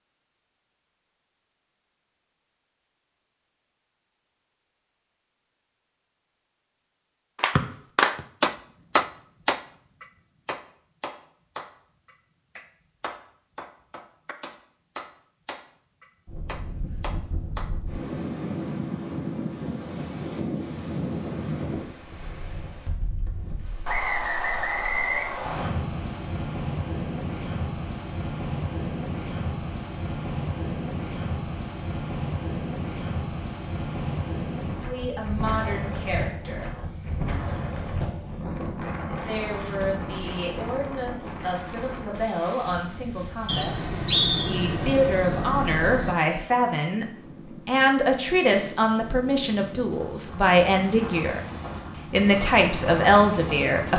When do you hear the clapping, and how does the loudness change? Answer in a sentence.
The clapping can be heard from 7.3 to 17.7 s, getting quieter.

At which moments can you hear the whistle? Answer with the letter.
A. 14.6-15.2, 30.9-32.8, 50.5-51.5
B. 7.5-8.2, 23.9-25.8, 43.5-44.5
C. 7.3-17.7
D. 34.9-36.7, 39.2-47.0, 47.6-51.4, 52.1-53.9
B.